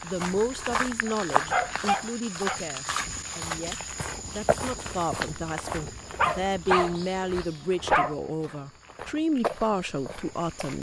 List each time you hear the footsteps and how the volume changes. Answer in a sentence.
You can hear the footsteps from 0.0 to 10.7 s, getting quieter.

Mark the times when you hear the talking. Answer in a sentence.
The talking can be heard from 0.0 to 10.7 s.